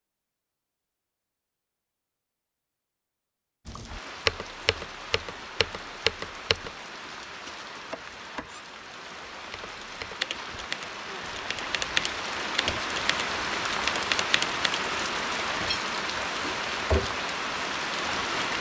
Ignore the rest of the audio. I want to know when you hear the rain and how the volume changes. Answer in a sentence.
You can hear the rain from 3.6 to 18.5 s, getting louder.